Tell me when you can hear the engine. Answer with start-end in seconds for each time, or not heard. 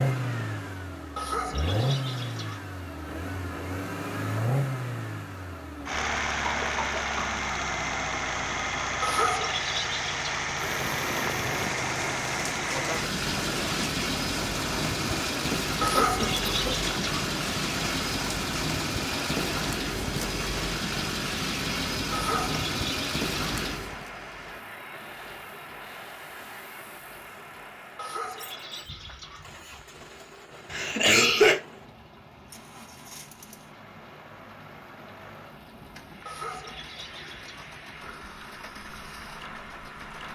0.0-40.2.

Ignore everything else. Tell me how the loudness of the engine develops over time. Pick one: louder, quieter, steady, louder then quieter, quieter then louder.
quieter.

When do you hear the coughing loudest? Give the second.
31 s.